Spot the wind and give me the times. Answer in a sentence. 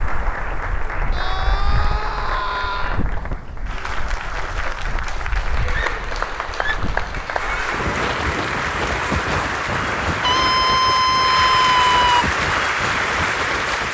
The wind can be heard from 0.0 to 13.8 s.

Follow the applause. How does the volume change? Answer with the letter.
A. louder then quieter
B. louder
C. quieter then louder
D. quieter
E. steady
B.